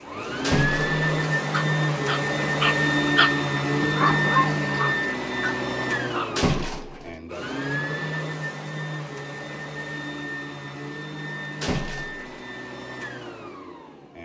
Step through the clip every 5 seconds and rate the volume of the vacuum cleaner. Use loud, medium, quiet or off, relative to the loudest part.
loud, medium, quiet.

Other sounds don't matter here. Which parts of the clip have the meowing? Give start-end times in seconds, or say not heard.
not heard.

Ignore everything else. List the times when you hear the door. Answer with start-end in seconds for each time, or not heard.
0.4-1.0, 6.3-7.2, 11.6-12.3.